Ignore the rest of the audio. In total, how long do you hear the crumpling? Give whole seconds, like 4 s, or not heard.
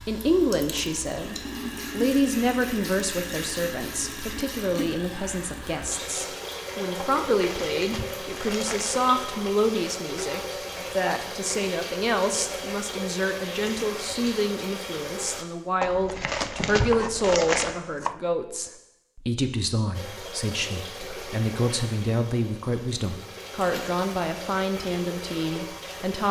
4 s.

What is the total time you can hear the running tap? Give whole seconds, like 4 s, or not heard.
22 s.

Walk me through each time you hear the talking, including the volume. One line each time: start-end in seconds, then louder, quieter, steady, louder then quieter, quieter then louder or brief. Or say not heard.
0.0-26.2 steady.